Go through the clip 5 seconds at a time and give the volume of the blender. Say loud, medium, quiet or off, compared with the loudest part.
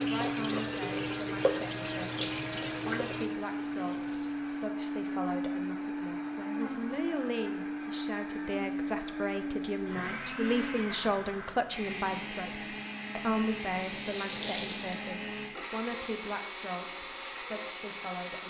loud, loud, loud, medium.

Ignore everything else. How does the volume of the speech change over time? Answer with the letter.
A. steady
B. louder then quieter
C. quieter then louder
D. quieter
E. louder
B.